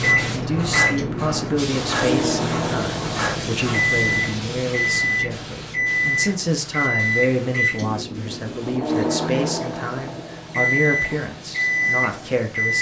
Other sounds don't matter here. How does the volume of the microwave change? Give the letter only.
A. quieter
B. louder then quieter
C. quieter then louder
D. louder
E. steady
E.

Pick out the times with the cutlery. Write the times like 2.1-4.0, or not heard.
0.0-4.0.